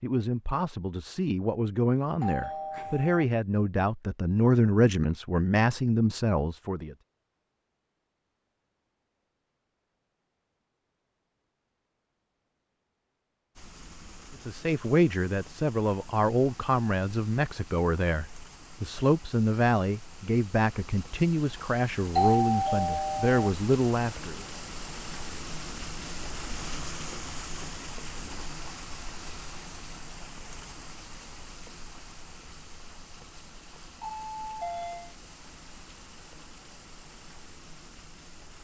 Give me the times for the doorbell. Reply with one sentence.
The doorbell can be heard from 2.2 to 3.2 s, from 22.1 to 23.5 s and from 34.0 to 35.1 s.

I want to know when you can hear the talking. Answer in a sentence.
The talking can be heard from 0.0 to 7.0 s and from 14.4 to 24.4 s.